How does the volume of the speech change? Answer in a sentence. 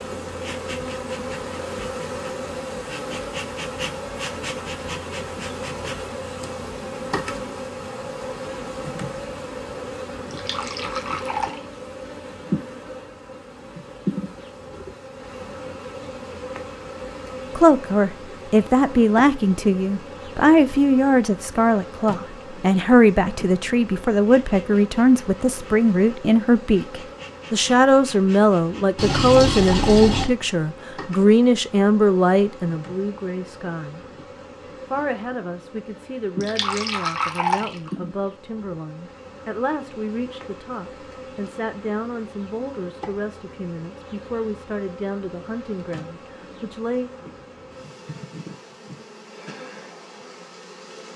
The volume of the speech goes down.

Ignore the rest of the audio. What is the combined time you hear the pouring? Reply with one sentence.
The pouring can be heard for 4 seconds in total.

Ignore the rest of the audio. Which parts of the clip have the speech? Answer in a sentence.
The speech can be heard from 17.6 to 34.0 s and from 34.9 to 47.1 s.